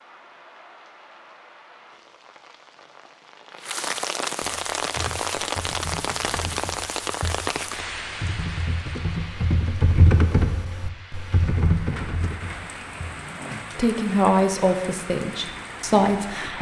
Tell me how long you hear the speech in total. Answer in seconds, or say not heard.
3 s.